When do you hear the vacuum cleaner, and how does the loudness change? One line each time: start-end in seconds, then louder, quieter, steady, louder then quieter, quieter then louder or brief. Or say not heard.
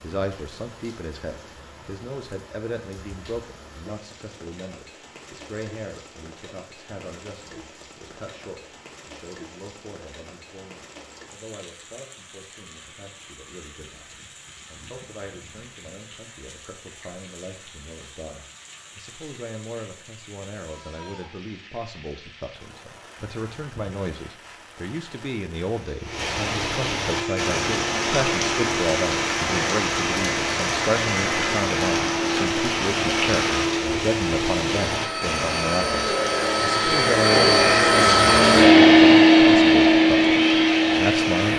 27.1-41.5 louder.